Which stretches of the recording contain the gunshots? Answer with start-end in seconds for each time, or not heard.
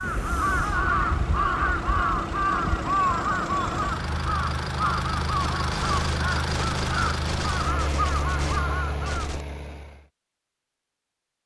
5.7-9.4.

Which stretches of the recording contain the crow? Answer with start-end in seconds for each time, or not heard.
0.0-9.3.